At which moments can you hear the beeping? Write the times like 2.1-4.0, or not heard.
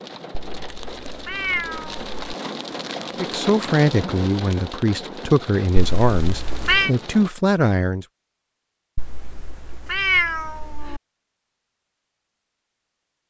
not heard.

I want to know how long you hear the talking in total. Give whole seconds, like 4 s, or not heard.
5 s.